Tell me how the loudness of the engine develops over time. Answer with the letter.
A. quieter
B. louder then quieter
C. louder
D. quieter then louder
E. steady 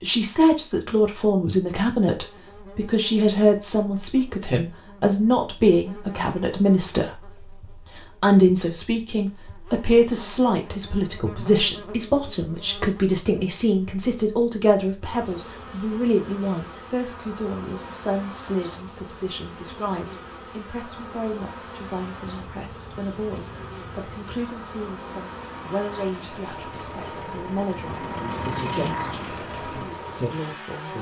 C.